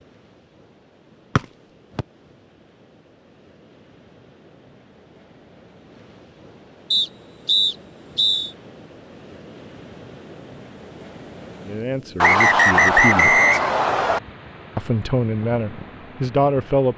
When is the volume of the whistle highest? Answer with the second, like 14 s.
13 s.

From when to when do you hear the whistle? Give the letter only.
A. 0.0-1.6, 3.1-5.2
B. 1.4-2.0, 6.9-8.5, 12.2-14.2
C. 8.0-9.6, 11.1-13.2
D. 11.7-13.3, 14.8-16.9
B.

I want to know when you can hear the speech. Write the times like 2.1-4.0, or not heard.
11.7-13.3, 14.8-16.9.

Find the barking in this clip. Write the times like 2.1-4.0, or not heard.
not heard.